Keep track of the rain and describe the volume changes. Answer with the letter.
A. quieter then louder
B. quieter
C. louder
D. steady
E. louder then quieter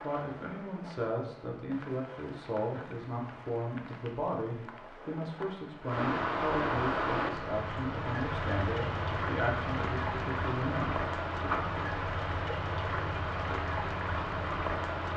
C.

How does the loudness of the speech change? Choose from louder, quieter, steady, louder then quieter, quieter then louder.
steady.